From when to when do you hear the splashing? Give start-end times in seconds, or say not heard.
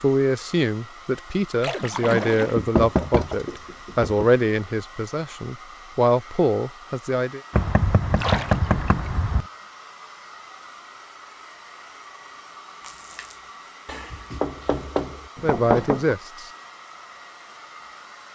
1.6-2.6, 8.2-9.1, 12.8-13.4.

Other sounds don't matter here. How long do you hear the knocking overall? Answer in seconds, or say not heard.
6 s.